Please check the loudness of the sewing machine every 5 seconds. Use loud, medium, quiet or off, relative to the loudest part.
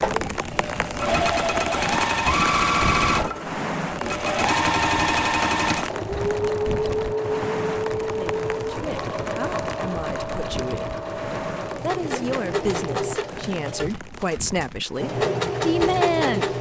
loud, loud, medium, loud.